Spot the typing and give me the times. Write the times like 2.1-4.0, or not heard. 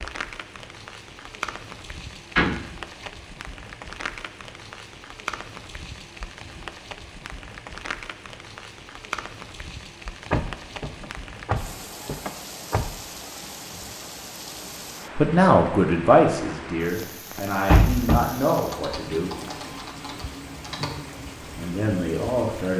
18.5-21.0.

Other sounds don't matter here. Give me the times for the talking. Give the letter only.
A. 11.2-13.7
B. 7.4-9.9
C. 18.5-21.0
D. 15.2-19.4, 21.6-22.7
D.